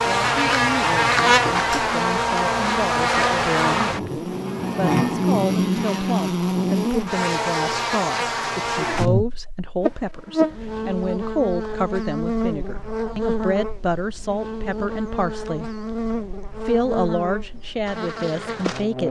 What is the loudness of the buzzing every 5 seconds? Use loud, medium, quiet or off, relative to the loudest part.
loud, loud, medium, medium.